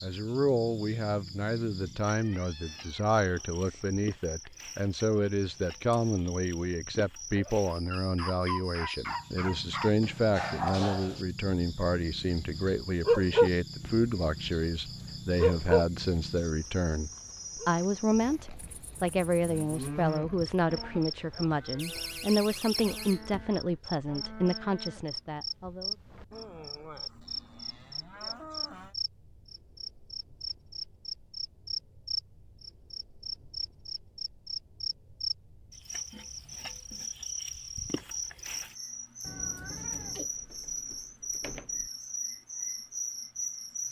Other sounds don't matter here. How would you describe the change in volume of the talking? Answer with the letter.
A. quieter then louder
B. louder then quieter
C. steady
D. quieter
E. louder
C.